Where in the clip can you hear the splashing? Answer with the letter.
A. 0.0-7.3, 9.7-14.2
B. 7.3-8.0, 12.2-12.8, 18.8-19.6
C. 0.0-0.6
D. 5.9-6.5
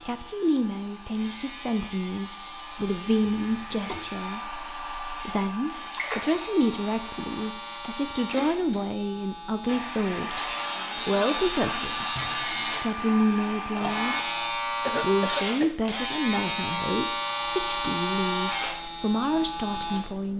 D.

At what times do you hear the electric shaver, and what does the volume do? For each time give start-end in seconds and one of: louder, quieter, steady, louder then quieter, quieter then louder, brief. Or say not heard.
0.0-20.3 louder.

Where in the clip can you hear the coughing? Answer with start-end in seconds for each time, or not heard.
3.4-4.0, 8.3-8.9, 14.8-15.7.